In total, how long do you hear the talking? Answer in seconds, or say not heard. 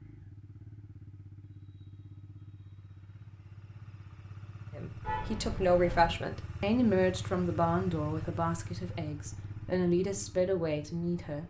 7 s.